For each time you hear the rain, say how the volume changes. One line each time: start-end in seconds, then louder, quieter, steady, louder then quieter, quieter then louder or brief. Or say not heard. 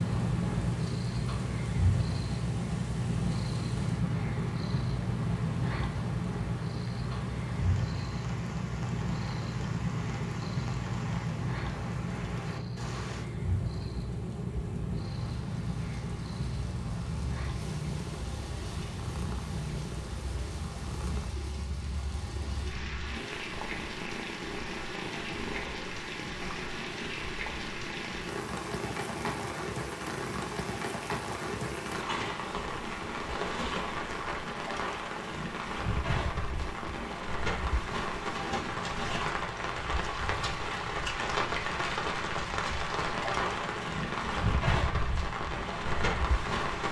0.0-46.8 louder.